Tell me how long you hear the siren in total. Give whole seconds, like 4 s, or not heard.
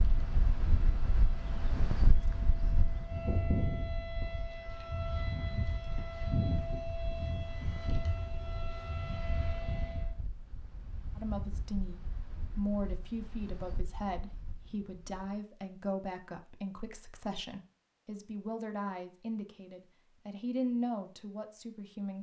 10 s.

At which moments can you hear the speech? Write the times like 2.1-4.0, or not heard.
11.2-22.1.